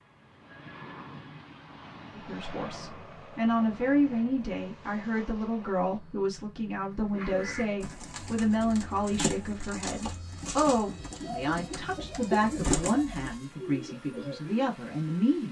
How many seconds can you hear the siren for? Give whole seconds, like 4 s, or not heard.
not heard.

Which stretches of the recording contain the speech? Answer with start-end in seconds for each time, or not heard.
2.1-15.4.